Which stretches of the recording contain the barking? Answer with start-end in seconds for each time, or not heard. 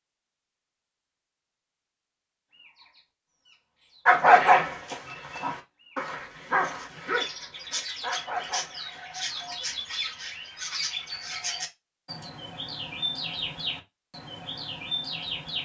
4.0-9.6.